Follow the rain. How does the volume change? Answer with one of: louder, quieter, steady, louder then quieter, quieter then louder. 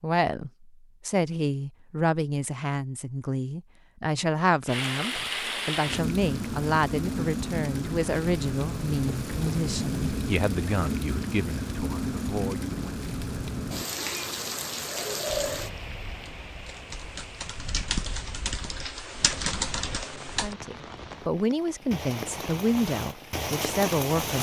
quieter then louder.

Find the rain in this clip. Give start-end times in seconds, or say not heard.
4.7-24.3.